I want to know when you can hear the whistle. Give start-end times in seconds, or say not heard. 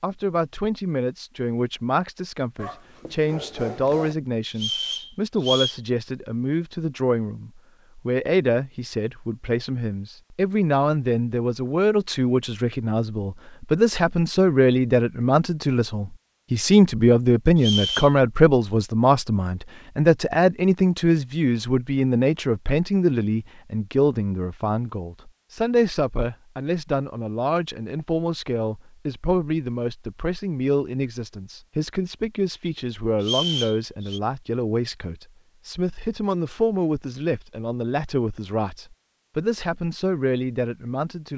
4.5-5.8, 17.6-18.1, 33.2-34.2.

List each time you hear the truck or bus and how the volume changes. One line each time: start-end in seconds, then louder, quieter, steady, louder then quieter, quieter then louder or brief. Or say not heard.
not heard.